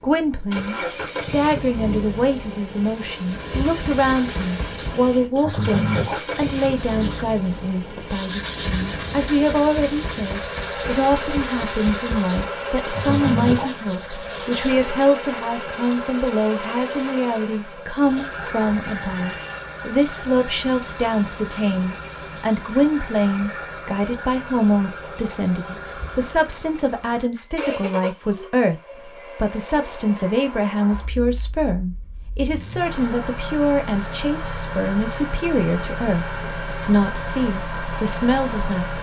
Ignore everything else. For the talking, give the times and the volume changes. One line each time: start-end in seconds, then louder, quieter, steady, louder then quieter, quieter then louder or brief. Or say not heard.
0.0-38.9 steady.